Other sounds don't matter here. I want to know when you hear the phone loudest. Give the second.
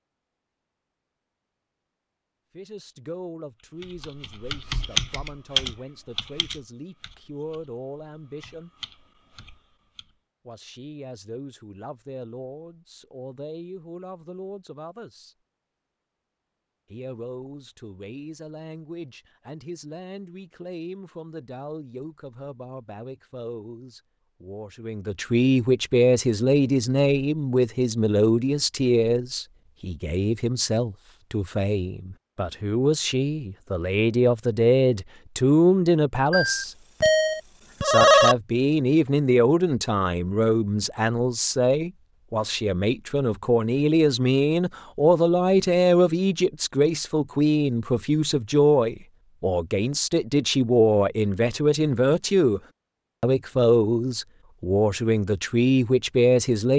38 s.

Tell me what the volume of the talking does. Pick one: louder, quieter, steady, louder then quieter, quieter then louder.
louder.